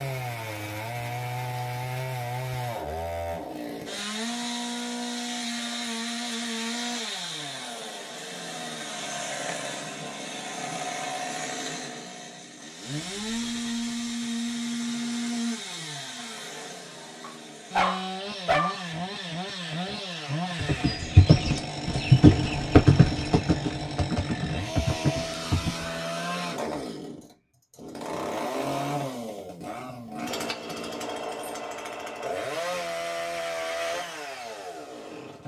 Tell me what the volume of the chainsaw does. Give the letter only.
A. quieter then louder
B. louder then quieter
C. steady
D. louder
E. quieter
C.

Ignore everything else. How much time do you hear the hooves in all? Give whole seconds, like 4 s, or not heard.
5 s.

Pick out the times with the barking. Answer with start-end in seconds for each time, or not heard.
17.2-18.9.